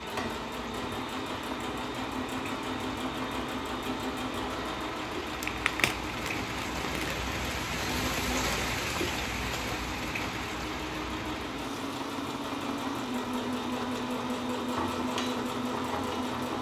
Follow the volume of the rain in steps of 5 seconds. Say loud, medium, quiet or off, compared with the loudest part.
medium, loud, medium, medium.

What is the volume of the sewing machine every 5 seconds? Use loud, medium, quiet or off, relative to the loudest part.
loud, medium, loud, loud.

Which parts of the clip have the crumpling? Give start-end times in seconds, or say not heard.
5.3-7.2.